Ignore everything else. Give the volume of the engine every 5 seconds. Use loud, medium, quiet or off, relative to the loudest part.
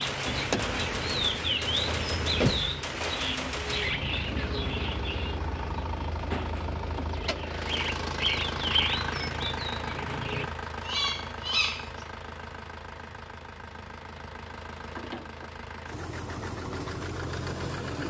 loud, loud, medium, loud.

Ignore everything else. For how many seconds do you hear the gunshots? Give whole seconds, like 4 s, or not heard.
4 s.